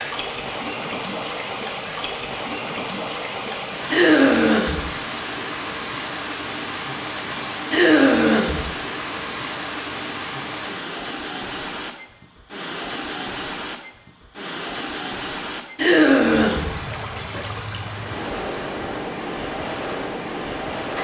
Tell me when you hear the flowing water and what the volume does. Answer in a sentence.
The flowing water can be heard from 0.0 to 20.9 s, at a steady volume.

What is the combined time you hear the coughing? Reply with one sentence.
You can hear the coughing for 3 seconds altogether.